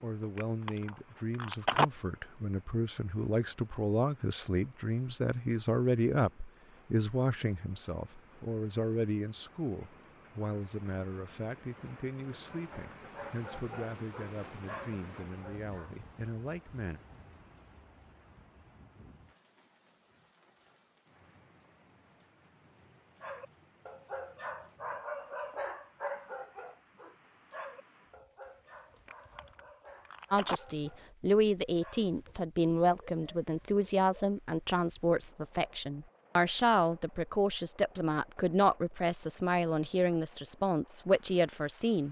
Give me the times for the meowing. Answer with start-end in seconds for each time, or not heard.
not heard.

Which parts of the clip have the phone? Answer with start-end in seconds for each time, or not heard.
0.3-1.9, 29.1-30.6.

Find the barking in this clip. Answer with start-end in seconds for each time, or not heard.
12.4-16.0, 23.2-34.4.